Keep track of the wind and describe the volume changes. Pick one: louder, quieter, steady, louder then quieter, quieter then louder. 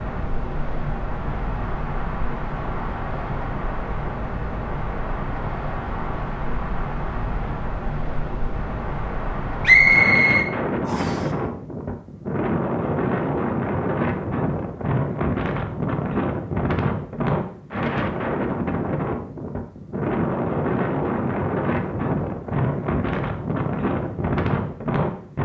louder.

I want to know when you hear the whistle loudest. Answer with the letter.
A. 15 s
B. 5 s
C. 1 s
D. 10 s
D.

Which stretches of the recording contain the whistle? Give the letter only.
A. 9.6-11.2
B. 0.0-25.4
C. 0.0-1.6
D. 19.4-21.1
A.